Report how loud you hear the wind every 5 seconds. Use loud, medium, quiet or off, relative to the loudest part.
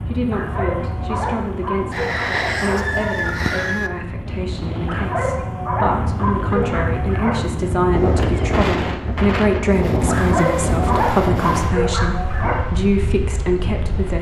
medium, loud, loud.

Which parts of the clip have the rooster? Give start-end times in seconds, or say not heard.
1.9-3.9.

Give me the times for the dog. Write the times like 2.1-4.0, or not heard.
0.3-3.0, 4.8-7.5, 10.1-12.7.